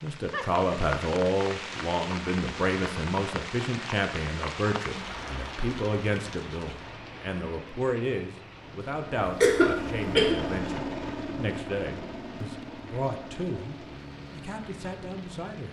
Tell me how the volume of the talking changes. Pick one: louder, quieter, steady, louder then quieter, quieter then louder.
quieter.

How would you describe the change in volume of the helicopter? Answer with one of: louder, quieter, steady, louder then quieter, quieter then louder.
quieter.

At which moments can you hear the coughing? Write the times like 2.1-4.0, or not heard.
9.2-10.3.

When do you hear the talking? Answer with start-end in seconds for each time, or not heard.
0.0-15.6.